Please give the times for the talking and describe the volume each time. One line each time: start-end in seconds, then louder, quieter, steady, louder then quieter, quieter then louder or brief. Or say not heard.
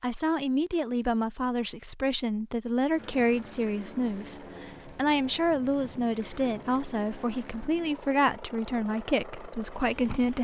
0.0-10.3 steady.